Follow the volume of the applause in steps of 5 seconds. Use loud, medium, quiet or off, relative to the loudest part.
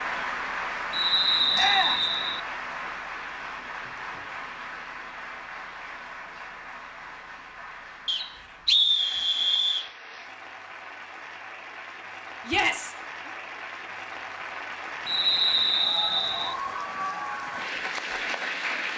loud, medium, medium, loud.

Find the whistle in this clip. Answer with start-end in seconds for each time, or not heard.
0.9-2.4, 8.1-9.9, 15.1-16.6.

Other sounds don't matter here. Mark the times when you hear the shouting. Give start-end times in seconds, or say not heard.
1.6-2.0, 12.4-13.3.